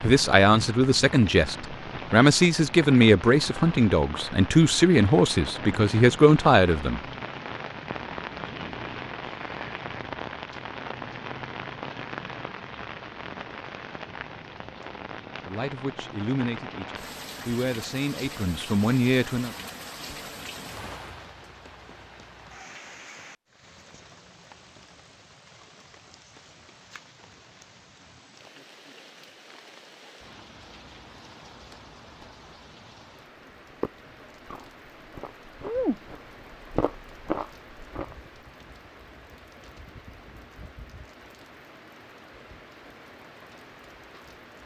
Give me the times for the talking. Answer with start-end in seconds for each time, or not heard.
0.0-7.0, 15.4-19.5.